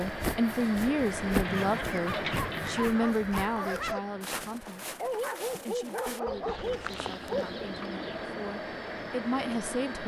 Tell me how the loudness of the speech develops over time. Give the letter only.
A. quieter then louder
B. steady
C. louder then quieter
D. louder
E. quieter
A.